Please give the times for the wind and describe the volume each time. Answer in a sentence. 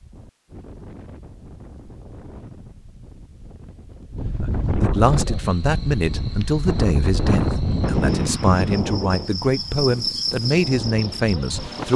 The wind can be heard from 0.0 to 11.9 s, getting louder then quieter.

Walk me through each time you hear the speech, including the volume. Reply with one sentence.
The speech can be heard from 4.4 to 11.9 s, at a steady volume.